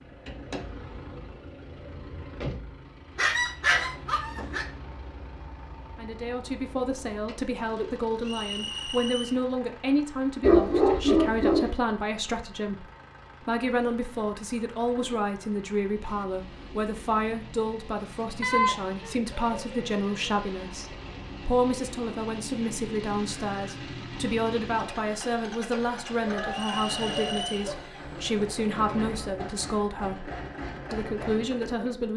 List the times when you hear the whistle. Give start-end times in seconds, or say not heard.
8.2-9.4, 26.5-27.6.